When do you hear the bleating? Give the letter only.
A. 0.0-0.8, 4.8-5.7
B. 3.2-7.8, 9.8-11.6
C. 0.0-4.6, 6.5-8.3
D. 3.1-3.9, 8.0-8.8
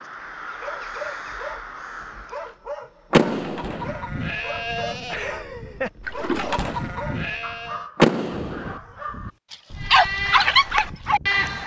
B.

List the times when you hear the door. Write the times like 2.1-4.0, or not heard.
3.1-3.9, 8.0-8.8.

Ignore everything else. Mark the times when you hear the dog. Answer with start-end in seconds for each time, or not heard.
0.4-11.2.